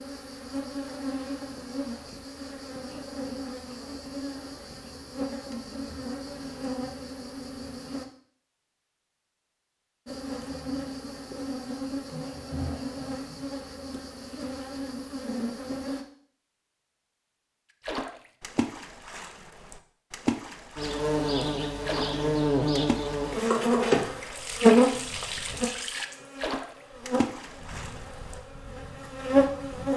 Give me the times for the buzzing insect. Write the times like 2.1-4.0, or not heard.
0.0-8.1, 10.1-16.1, 20.8-29.9.